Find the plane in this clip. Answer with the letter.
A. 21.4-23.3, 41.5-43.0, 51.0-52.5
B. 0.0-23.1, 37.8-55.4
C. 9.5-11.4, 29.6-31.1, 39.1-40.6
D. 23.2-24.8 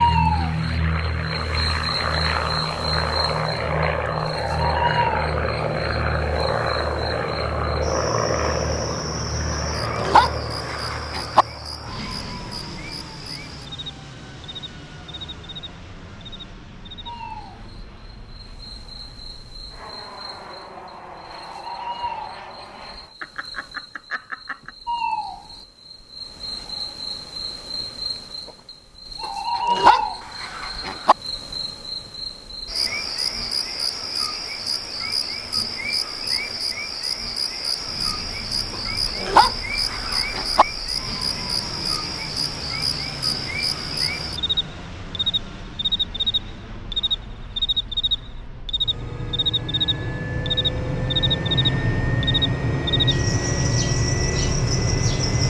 B.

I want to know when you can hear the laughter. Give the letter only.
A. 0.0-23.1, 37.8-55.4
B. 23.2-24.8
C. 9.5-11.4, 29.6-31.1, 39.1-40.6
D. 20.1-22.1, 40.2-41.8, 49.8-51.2
B.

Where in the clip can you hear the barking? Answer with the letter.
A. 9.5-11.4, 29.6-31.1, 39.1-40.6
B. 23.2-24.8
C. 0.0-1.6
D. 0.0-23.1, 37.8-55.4
A.